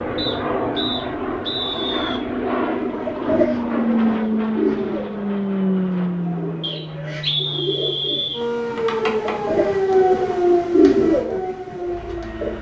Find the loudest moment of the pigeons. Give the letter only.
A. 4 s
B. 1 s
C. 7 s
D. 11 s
D.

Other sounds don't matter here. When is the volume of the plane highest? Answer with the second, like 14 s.
4 s.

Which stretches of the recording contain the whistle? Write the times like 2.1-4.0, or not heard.
0.1-2.2, 6.6-8.4.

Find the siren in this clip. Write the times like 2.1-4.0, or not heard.
8.3-12.5.